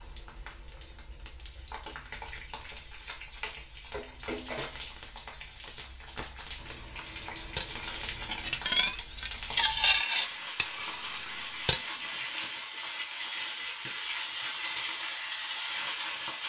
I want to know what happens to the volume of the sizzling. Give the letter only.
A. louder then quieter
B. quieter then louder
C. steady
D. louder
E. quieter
D.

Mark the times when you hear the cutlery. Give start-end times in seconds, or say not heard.
7.5-12.1.